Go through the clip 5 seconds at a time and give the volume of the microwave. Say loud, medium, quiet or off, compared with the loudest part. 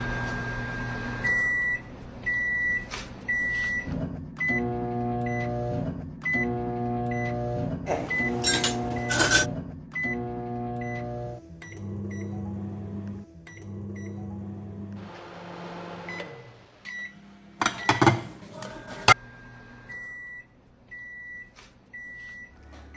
loud, loud, medium, quiet, quiet.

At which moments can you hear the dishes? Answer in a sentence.
You can hear the dishes from 7.8 to 9.5 s and from 17.6 to 19.1 s.